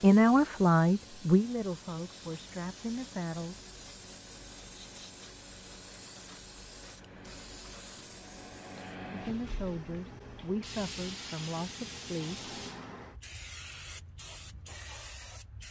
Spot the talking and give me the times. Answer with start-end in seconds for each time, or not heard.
0.0-3.6, 9.1-12.5.